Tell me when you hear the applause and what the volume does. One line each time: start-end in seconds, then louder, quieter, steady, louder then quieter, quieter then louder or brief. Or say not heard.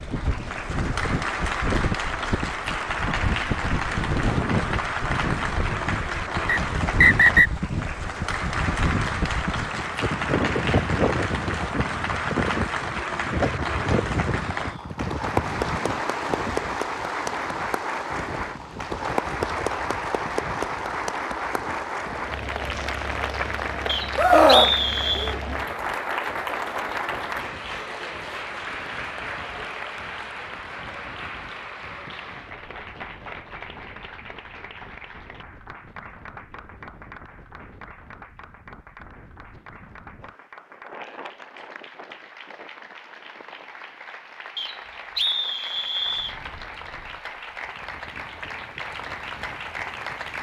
0.0-50.3 quieter.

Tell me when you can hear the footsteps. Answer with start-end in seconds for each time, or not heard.
not heard.